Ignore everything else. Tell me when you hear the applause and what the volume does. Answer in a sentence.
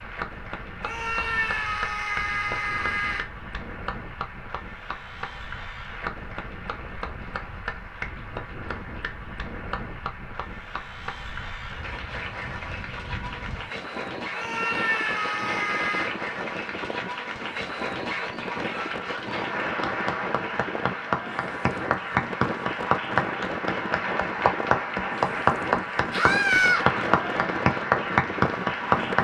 The applause can be heard from 0.0 to 29.1 s, getting louder.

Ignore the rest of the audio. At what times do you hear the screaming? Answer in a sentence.
The screaming can be heard from 0.8 to 3.2 s, from 14.3 to 16.1 s and from 26.1 to 26.9 s.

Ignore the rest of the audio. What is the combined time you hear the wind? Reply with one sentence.
The wind can be heard for 29 seconds in total.